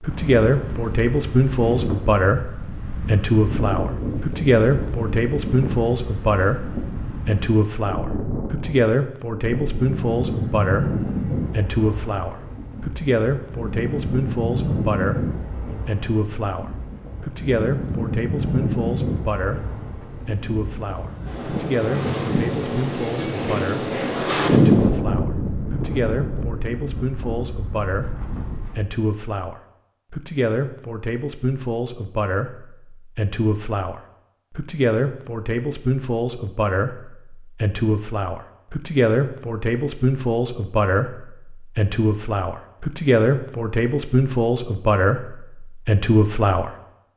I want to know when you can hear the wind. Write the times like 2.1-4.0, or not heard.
0.0-28.8.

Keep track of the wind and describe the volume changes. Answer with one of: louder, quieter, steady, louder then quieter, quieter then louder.
louder.